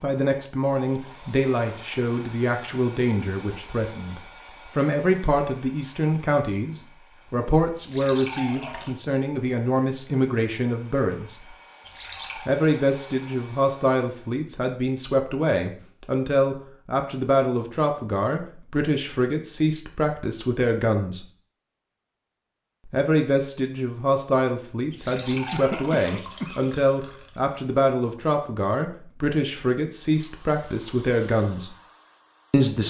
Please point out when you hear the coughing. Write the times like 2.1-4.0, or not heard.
25.5-26.7.